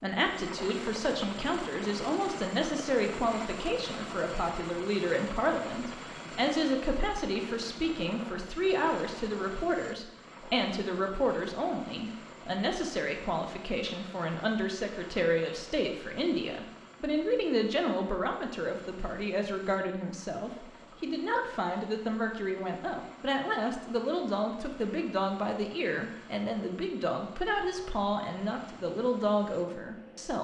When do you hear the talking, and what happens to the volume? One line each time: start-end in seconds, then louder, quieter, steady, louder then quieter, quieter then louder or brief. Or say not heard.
0.0-30.4 steady.